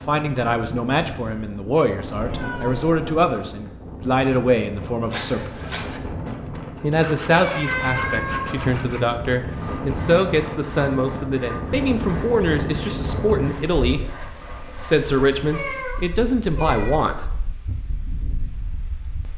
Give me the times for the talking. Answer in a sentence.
The talking can be heard from 0.1 to 5.6 s and from 6.8 to 17.3 s.